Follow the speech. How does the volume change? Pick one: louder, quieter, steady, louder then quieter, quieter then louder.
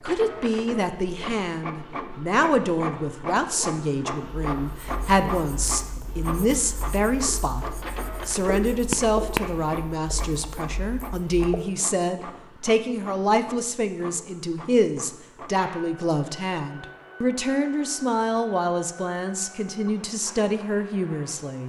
steady.